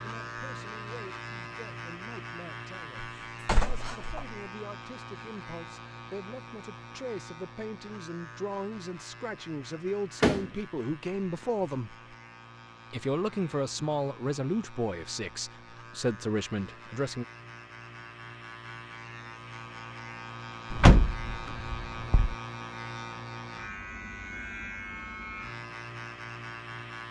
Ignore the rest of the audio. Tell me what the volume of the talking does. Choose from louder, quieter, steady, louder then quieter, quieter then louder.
louder.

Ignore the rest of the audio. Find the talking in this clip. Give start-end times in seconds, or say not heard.
0.0-11.9, 12.9-17.2.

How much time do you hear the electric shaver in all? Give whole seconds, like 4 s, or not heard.
27 s.